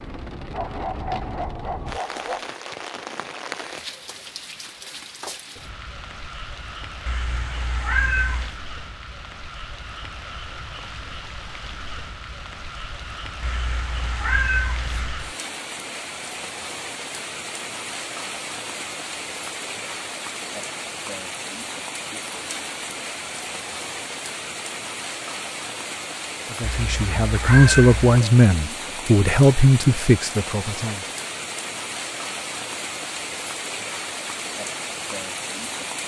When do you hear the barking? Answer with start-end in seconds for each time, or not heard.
0.5-2.5.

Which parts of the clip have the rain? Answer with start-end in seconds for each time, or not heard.
0.0-36.0.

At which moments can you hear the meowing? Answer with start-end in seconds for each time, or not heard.
7.0-8.6, 13.4-15.3, 26.6-28.2.